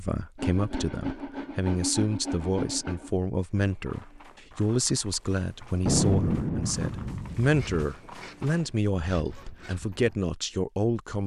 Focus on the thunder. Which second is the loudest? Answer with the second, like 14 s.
6 s.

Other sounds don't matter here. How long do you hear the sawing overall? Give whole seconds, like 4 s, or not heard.
5 s.